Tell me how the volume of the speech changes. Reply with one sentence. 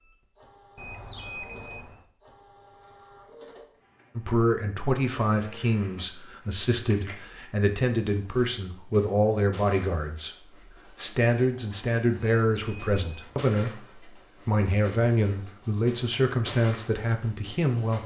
The loudness of the speech stays about the same.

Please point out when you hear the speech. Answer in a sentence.
You can hear the speech from 4.2 to 18.0 s.